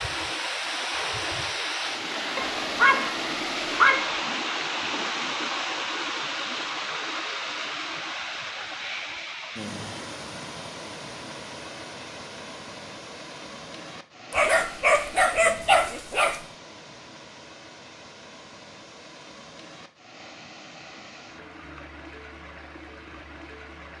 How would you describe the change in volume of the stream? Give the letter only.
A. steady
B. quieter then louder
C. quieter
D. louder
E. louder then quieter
C.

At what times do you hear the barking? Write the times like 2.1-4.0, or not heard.
2.4-4.2, 14.3-16.4.